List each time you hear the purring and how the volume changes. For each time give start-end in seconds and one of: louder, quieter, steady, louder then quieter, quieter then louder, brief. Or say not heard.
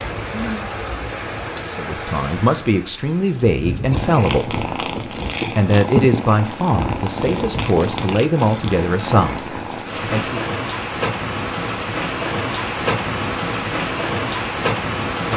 3.9-9.9 louder then quieter.